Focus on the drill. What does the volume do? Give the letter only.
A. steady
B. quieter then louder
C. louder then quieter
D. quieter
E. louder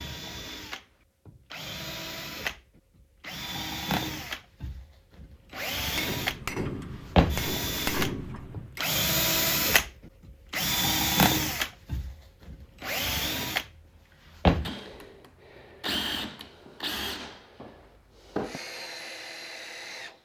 C.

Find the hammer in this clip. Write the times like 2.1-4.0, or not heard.
6.0-8.8.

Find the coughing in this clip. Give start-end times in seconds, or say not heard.
not heard.